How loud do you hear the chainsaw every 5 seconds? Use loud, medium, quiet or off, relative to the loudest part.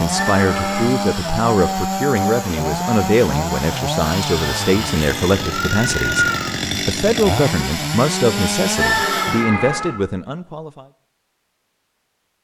loud, loud, off.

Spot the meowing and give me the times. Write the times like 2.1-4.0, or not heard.
0.1-0.9, 4.4-6.5, 8.8-9.9.